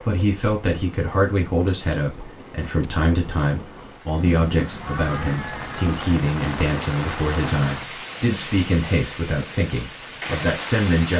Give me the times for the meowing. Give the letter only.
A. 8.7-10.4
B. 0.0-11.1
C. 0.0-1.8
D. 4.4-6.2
D.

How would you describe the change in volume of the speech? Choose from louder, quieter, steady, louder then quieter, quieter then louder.
steady.